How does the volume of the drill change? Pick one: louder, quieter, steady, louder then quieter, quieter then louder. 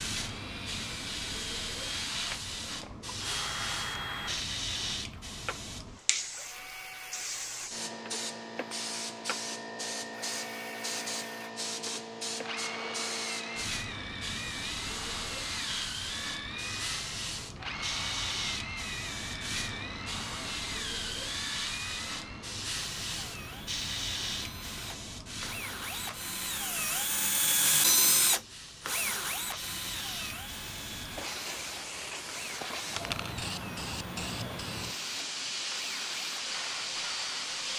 louder then quieter.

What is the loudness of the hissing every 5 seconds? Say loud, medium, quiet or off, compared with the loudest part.
loud, loud, loud, loud, loud, medium, loud, loud.